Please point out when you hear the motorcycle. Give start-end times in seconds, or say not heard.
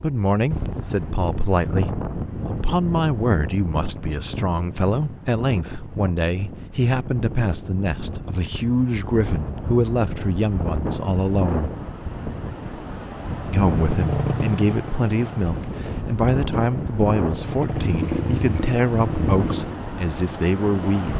13.7-15.8, 17.3-19.8.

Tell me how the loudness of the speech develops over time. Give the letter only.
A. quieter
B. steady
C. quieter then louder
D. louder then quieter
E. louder
B.